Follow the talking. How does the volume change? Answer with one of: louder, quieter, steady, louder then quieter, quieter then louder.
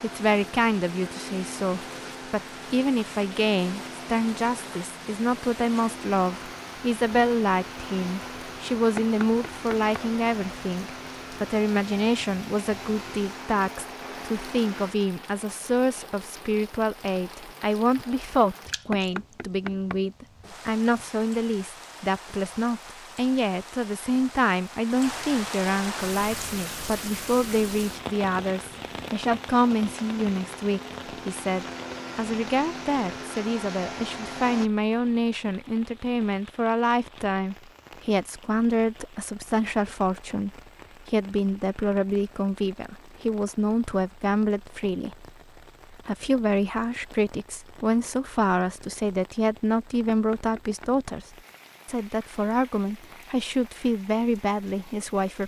steady.